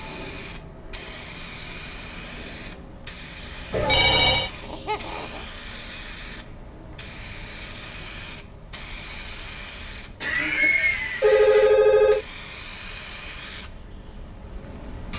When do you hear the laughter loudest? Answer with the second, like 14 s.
11 s.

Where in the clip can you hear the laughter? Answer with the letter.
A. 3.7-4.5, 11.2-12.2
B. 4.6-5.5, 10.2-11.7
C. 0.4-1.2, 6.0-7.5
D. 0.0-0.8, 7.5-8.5
B.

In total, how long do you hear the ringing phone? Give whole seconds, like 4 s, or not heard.
2 s.